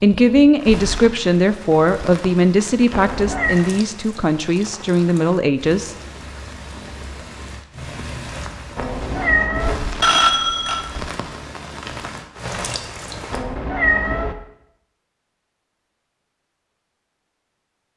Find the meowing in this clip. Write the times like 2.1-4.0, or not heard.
2.9-3.6, 8.8-9.8, 13.3-14.3.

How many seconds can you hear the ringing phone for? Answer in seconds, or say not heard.
2 s.